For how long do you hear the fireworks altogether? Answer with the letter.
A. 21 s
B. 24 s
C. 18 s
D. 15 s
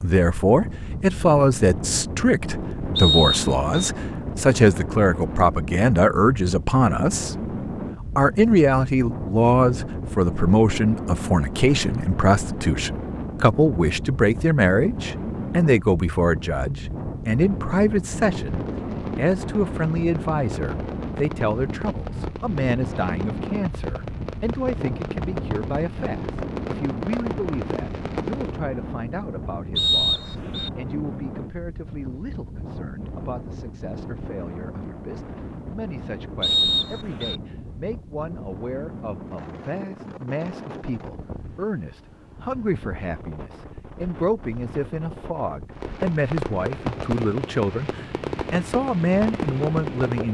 D.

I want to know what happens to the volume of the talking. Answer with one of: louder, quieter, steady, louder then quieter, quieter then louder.
quieter then louder.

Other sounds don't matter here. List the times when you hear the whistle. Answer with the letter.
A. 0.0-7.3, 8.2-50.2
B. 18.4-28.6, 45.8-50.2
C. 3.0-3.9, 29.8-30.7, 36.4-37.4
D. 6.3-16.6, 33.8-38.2
C.